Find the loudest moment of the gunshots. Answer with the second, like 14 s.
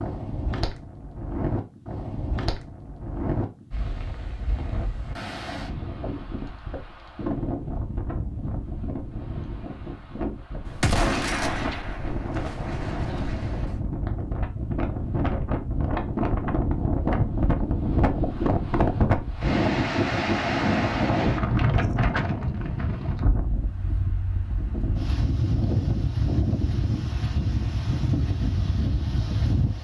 11 s.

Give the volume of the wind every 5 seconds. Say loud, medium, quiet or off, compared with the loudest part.
medium, medium, medium, loud, loud, loud.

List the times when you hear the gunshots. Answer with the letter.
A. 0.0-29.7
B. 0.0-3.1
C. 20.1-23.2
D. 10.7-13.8
D.